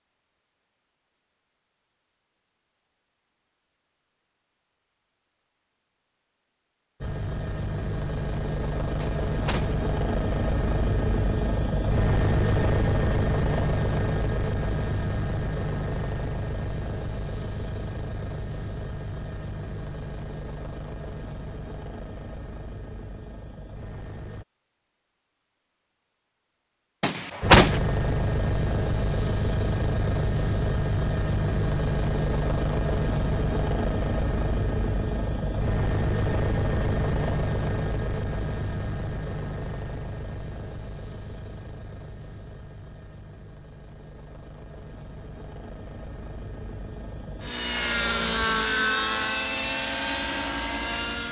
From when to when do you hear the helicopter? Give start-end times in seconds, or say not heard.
7.0-24.4, 27.4-51.2.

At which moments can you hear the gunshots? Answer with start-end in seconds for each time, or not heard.
9.0-9.8, 27.0-27.8.